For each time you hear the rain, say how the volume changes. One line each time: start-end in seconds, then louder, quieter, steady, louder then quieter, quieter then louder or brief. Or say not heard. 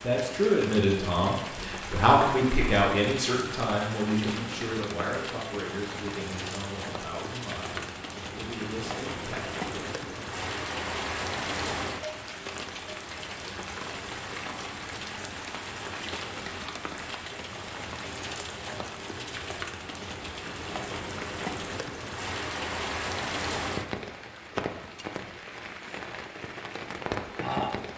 0.0-27.9 steady.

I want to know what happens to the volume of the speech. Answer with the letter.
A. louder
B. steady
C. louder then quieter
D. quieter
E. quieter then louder
D.